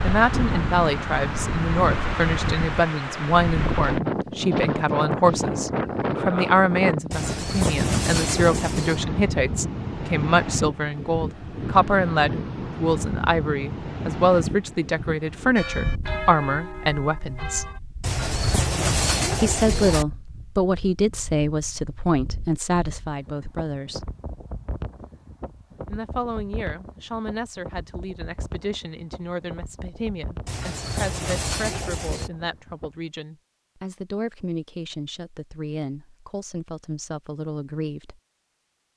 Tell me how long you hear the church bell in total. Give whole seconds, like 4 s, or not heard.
2 s.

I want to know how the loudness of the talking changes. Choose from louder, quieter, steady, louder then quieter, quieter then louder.
quieter.